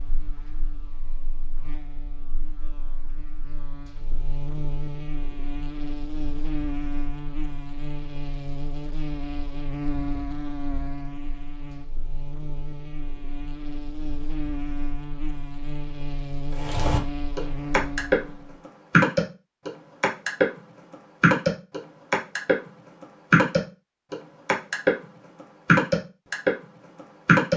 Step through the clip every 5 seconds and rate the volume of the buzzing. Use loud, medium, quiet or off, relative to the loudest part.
medium, loud, loud, loud, off, off.